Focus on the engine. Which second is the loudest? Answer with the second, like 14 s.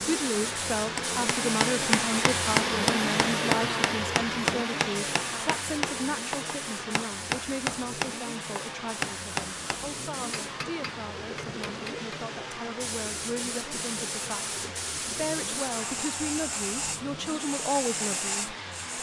3 s.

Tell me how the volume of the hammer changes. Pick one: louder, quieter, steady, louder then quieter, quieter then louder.
quieter.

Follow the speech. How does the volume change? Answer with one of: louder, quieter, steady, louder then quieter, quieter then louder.
quieter then louder.